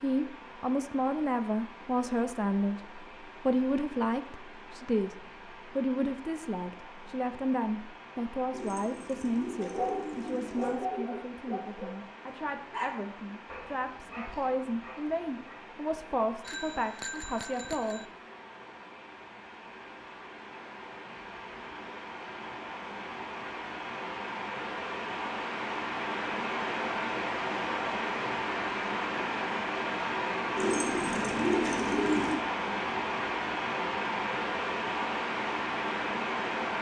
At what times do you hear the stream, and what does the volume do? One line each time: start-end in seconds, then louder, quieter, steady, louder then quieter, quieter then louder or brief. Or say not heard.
0.0-36.7 louder.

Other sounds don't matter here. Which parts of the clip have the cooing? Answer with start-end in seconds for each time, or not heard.
8.5-10.8, 30.6-32.5.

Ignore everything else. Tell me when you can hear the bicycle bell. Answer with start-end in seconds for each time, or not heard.
16.4-18.1.